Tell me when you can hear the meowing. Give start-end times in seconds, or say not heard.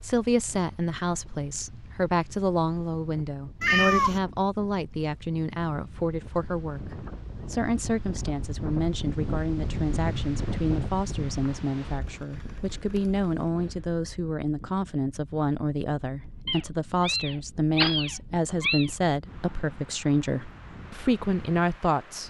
3.6-4.2, 16.4-18.9.